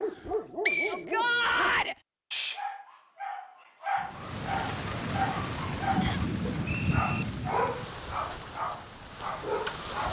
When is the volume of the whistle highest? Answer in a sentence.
The volume of the whistle peaks at 1 second.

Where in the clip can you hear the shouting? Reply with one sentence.
The shouting can be heard from 0.8 to 1.9 s.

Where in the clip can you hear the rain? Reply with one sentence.
The rain can be heard from 4.0 to 10.0 s.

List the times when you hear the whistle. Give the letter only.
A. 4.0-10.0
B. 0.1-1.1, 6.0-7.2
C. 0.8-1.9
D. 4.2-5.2
B.